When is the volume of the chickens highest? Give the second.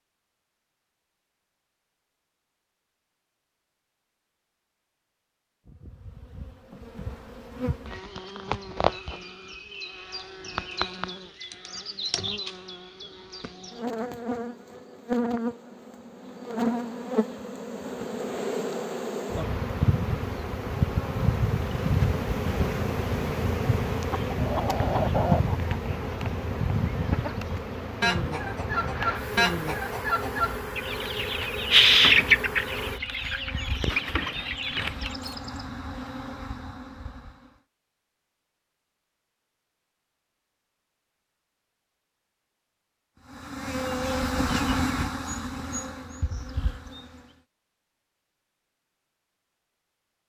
32 s.